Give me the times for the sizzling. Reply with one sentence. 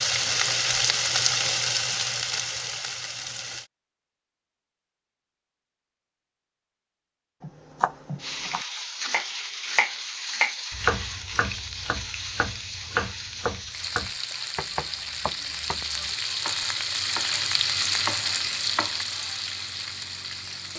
You can hear the sizzling from 0.0 to 3.7 s and from 8.2 to 20.7 s.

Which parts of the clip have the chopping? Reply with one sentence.
The chopping can be heard from 7.4 to 19.0 s.